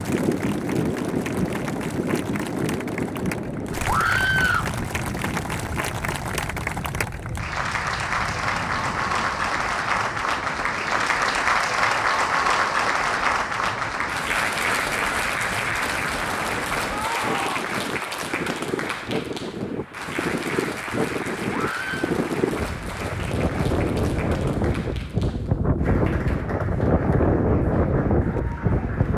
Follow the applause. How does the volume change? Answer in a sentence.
The volume of the applause goes up, then down.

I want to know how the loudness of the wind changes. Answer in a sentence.
The loudness of the wind goes down, then up.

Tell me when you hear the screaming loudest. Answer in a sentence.
The volume of the screaming peaks at 4 seconds.